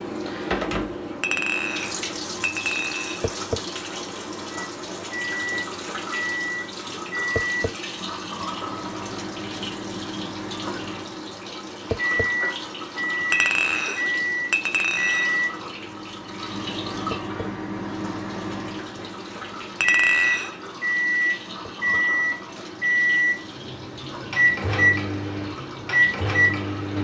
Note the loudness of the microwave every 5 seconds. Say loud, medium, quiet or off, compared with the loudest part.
off, medium, medium, medium, loud, loud.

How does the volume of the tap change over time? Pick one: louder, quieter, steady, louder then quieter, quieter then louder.
quieter.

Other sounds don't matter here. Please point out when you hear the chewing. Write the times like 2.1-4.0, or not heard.
not heard.